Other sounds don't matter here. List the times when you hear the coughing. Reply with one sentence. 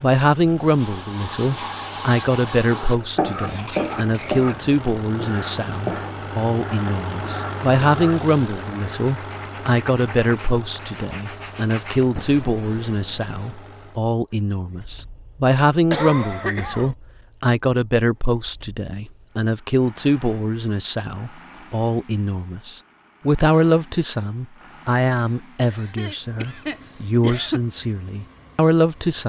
The coughing can be heard from 3.5 to 4.5 s, from 15.9 to 16.9 s and from 25.6 to 27.6 s.